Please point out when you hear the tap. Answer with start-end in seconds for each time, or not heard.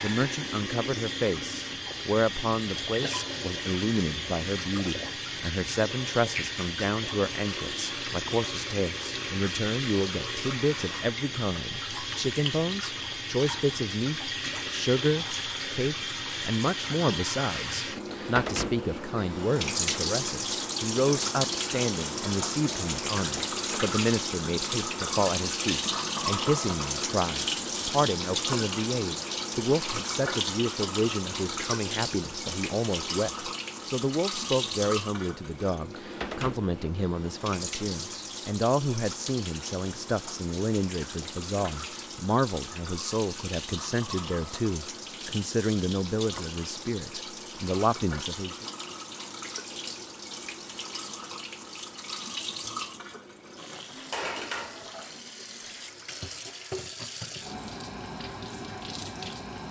0.0-59.6.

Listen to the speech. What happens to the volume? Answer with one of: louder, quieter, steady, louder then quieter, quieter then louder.
steady.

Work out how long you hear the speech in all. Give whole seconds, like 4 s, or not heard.
49 s.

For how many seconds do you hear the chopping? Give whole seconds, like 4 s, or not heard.
not heard.